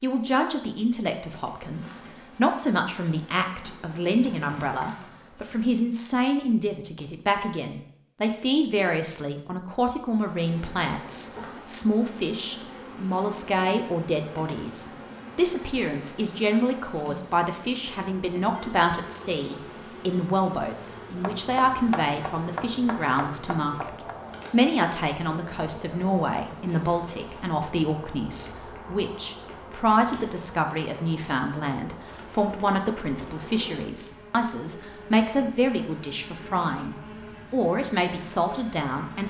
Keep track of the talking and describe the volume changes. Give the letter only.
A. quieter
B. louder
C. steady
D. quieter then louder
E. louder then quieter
C.